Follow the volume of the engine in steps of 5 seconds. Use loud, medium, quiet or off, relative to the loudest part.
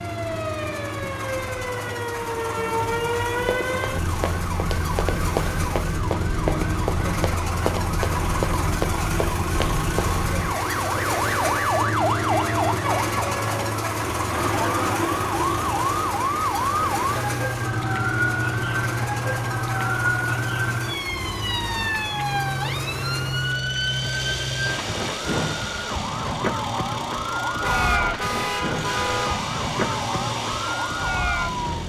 medium, loud, loud, loud, medium, medium, medium.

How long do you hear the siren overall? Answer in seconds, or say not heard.
32 s.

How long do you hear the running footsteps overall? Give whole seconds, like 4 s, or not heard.
7 s.